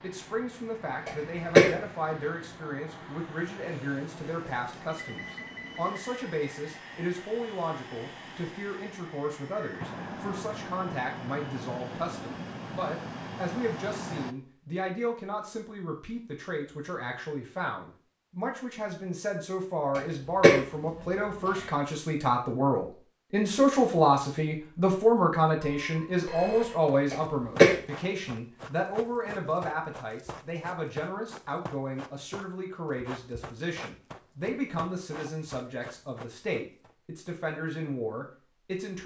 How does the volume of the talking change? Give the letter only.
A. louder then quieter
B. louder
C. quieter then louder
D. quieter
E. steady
A.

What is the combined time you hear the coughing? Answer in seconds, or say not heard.
2 s.